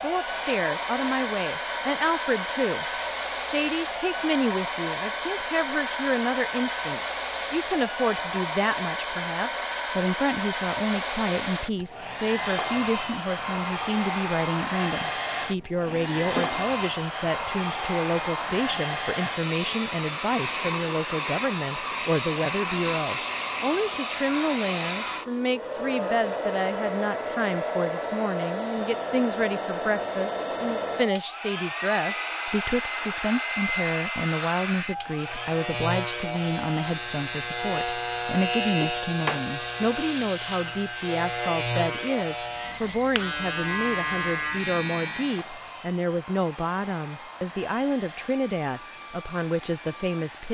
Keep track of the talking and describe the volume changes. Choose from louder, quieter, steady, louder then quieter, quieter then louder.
steady.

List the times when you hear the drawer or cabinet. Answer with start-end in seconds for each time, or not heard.
15.8-16.7, 38.8-39.4.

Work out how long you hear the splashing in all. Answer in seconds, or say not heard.
not heard.